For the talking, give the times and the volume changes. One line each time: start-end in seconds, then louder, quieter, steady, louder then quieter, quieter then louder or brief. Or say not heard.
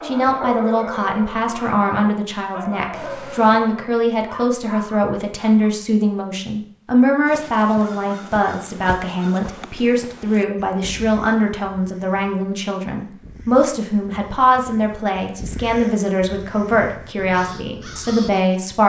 0.0-18.8 steady.